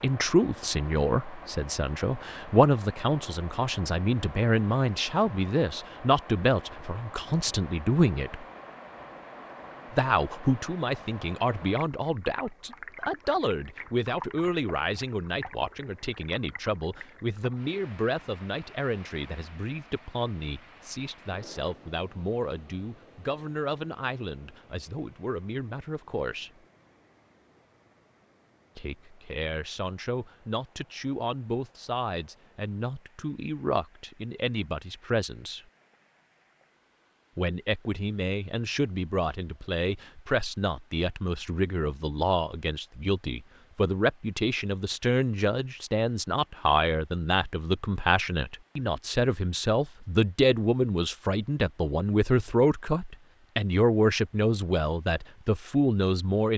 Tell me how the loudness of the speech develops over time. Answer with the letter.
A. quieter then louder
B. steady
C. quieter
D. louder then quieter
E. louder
A.